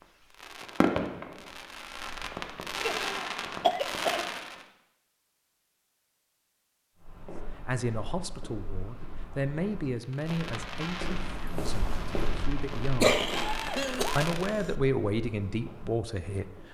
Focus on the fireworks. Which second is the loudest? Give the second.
1 s.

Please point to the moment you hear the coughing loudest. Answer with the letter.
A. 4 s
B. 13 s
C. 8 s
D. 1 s
B.